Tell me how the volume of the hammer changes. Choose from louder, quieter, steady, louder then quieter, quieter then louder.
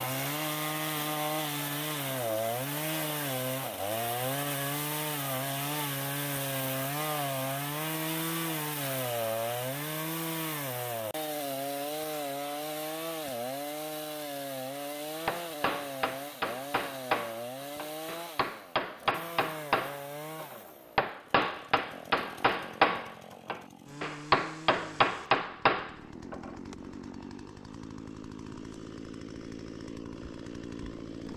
louder.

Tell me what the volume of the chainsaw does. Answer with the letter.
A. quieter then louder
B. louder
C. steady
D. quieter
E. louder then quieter
D.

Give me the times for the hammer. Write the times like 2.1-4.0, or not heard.
15.2-26.5.